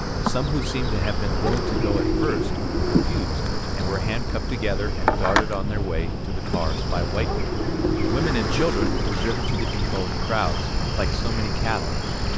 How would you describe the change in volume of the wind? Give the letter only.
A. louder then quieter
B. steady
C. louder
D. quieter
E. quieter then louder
B.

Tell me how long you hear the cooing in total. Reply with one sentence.
The cooing can be heard for 4 seconds in total.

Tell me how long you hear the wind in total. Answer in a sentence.
You can hear the wind for 12 seconds altogether.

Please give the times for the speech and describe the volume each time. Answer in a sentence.
The speech can be heard from 0.2 to 12.3 s, at a steady volume.